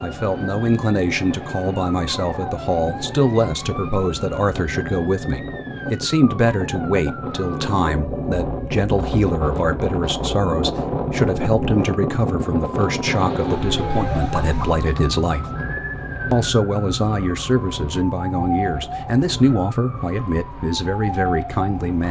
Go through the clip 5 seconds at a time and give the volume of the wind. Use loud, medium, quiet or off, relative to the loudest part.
medium, loud, loud, medium, quiet.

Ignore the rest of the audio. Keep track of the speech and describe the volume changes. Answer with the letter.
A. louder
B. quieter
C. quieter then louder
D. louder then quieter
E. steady
E.